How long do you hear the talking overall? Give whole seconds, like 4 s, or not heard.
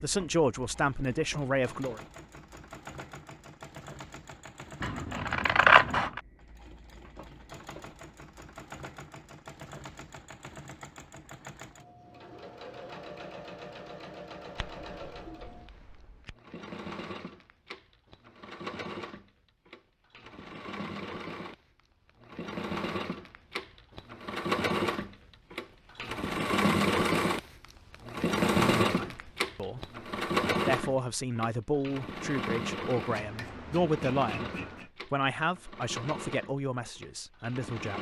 10 s.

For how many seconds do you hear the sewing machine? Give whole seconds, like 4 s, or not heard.
38 s.